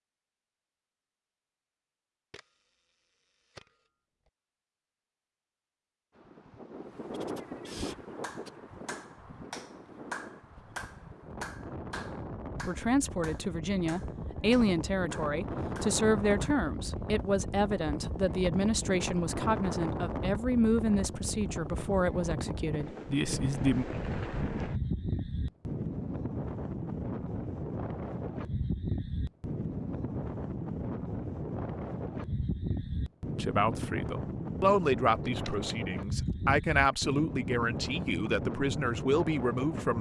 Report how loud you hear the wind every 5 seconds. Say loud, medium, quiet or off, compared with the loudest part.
off, medium, medium, loud, loud, loud, loud, loud.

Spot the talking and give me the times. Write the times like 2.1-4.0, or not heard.
12.6-23.9, 33.4-39.9.